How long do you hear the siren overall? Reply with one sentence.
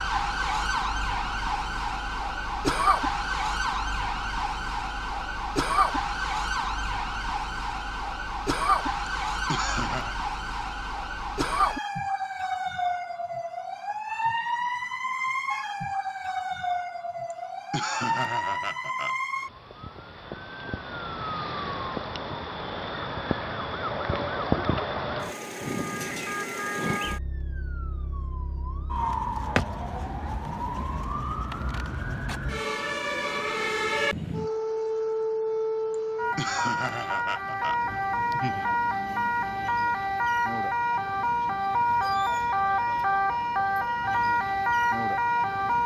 The siren can be heard for 46 seconds in total.